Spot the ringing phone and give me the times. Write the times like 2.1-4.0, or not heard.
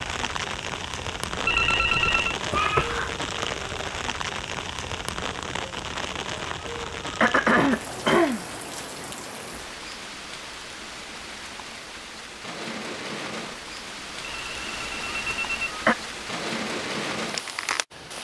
1.4-2.4, 14.2-15.8.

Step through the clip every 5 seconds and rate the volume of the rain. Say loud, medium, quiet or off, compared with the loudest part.
loud, loud, medium, loud.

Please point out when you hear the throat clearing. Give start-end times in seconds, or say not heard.
2.5-3.1, 6.7-8.4, 15.1-15.9.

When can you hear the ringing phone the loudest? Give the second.
2 s.